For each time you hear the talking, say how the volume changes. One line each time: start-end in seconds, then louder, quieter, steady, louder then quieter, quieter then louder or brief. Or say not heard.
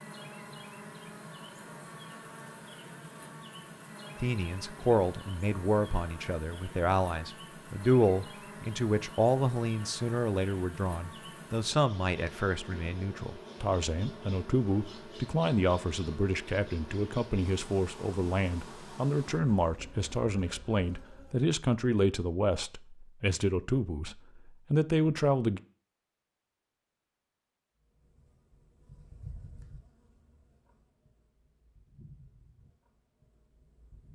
4.2-25.6 steady.